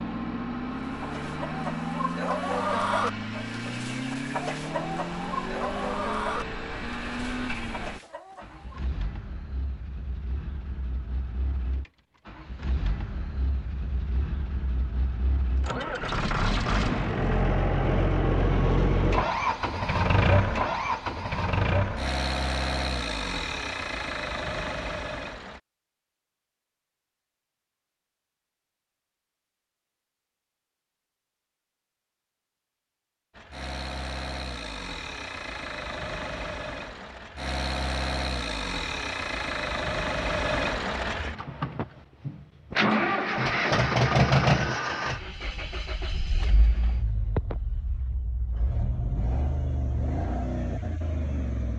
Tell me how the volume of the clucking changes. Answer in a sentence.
The volume of the clucking goes down.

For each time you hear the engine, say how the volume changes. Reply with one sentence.
The engine can be heard from 0.0 to 25.6 s, getting quieter then louder; and from 33.4 to 51.7 s, getting louder then quieter.